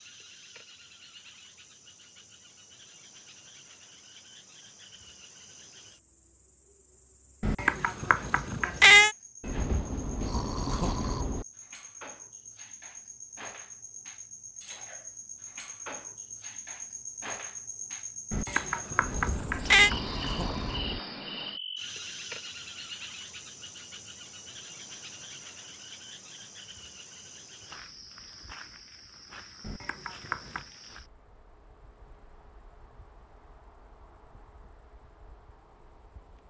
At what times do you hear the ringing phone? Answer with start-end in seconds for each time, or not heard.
not heard.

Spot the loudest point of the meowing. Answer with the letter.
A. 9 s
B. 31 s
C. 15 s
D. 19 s
A.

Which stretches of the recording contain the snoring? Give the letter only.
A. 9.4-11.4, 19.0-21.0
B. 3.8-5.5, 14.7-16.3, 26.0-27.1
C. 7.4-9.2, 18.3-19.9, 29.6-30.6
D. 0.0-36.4
A.